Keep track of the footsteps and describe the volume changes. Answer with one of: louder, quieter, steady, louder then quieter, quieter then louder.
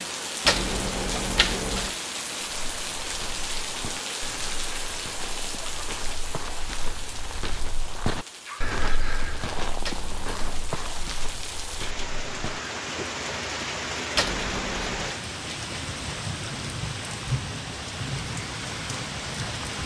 louder then quieter.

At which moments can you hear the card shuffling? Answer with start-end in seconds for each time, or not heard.
0.5-1.9, 9.8-10.7, 14.2-15.2.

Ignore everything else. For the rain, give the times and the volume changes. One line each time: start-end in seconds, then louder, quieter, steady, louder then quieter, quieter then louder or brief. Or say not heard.
0.0-19.8 quieter then louder.